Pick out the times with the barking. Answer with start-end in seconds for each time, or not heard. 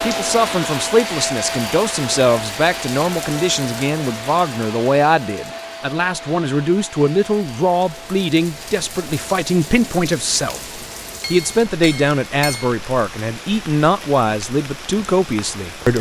not heard.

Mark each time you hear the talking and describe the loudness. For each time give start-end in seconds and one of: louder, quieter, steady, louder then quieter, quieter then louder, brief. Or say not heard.
0.0-15.9 steady.